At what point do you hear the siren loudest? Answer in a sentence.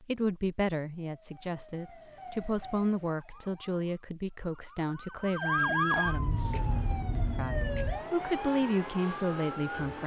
The loudest moment of the siren is at 6 seconds.